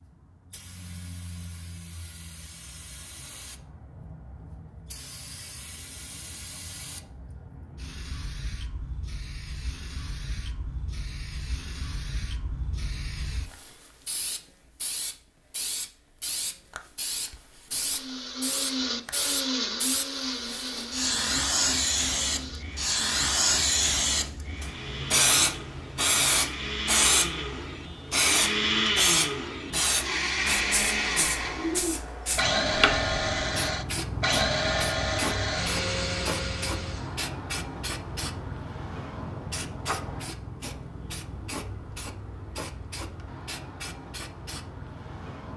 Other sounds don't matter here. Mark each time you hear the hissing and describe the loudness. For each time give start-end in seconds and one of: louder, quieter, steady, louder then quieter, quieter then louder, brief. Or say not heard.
0.0-45.5 louder then quieter.